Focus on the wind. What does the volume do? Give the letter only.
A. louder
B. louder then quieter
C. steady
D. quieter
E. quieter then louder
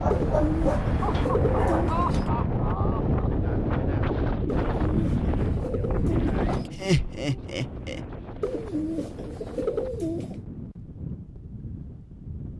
D.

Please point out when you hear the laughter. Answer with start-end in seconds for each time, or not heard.
0.8-3.3, 6.7-8.0.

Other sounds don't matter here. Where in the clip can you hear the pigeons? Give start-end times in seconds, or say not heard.
0.1-2.2, 4.5-6.7, 8.4-10.4.